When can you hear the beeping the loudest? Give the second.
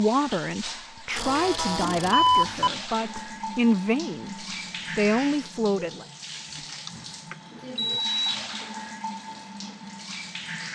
2 s.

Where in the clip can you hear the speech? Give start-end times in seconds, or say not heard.
0.0-6.0.